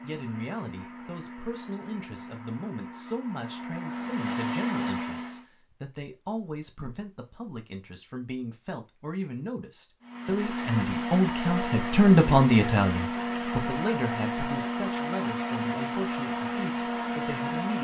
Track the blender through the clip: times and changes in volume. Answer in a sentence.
The blender can be heard from 0.0 to 5.5 s, getting louder; and from 10.0 to 17.8 s, at a steady volume.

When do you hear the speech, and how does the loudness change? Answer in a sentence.
The speech can be heard from 0.0 to 17.8 s, getting louder then quieter.